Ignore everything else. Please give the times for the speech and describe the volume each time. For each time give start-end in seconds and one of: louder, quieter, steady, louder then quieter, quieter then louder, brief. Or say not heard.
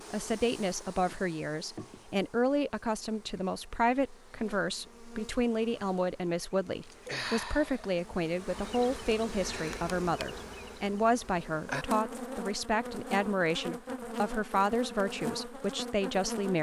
0.1-16.5 steady.